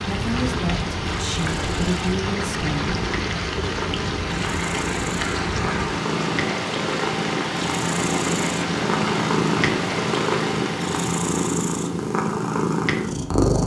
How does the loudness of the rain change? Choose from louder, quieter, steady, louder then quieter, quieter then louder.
steady.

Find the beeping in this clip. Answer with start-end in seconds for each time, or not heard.
not heard.